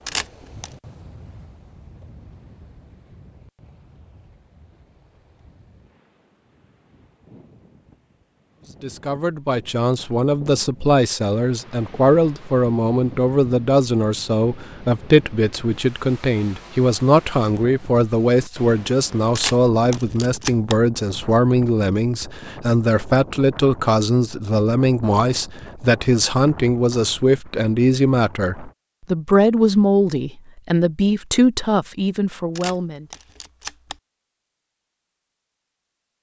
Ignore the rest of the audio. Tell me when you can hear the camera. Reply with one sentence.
The camera can be heard from 0.1 to 0.7 s, from 19.4 to 20.8 s and from 32.5 to 34.0 s.